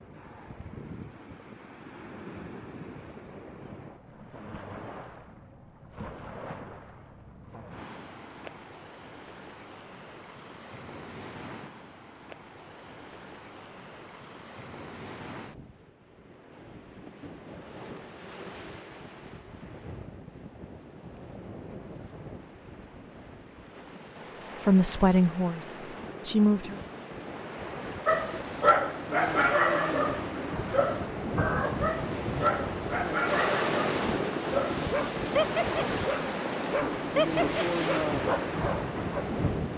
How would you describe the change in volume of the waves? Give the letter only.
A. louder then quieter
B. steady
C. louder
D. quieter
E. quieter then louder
C.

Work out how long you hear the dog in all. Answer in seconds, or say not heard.
11 s.